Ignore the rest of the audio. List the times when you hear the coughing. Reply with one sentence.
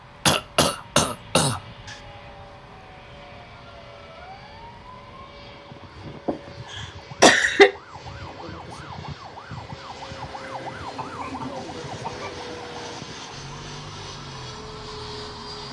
You can hear the coughing from 0.2 to 1.9 s, from 6.2 to 7.7 s and from 10.5 to 12.3 s.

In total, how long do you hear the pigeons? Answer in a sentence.
You can't hear the pigeons here.